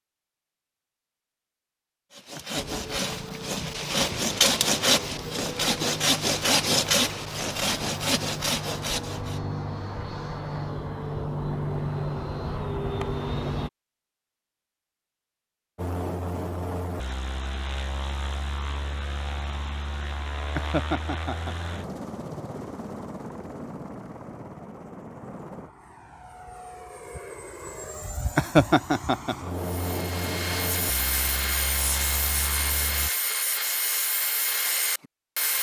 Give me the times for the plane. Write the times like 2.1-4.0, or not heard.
2.5-13.7, 15.8-33.1.